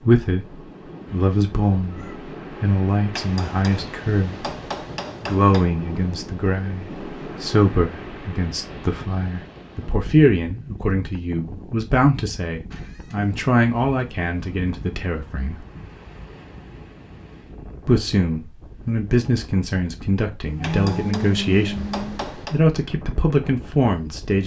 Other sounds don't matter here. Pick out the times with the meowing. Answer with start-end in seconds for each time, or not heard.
1.1-2.2, 12.7-13.3, 20.4-22.2.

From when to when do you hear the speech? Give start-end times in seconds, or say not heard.
0.0-4.5, 5.2-15.7, 17.9-24.4.